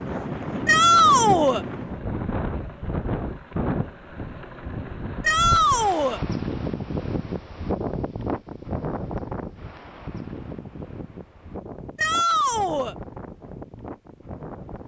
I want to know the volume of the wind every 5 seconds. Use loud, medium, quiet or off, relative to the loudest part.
loud, loud, medium.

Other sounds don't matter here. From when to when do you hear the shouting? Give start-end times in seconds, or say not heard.
0.7-1.6, 5.2-6.2, 11.9-12.9.